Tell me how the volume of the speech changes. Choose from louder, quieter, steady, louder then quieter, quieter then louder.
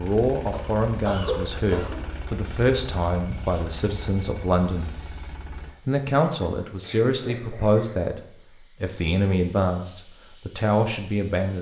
steady.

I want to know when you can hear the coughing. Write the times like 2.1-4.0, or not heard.
0.5-2.0, 6.2-8.1.